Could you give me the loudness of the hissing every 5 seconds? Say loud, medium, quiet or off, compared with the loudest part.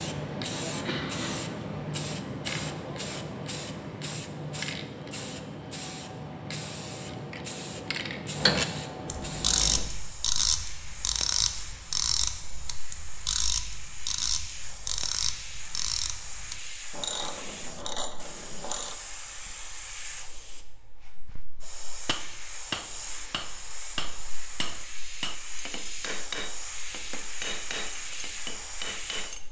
loud, loud, medium, medium, medium, medium.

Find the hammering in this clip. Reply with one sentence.
The hammering can be heard from 22.1 to 29.4 s.